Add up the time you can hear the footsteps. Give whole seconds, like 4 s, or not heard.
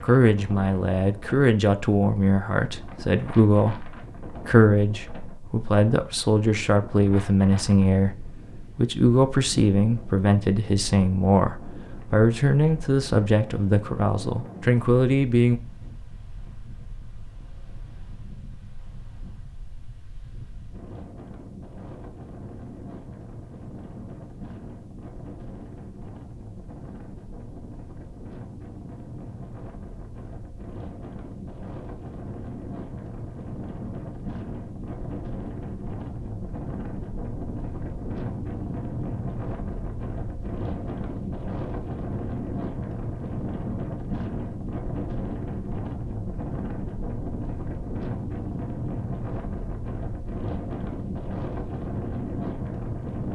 not heard.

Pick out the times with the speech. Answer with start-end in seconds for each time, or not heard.
0.0-15.6.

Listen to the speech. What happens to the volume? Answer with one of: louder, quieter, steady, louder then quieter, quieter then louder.
steady.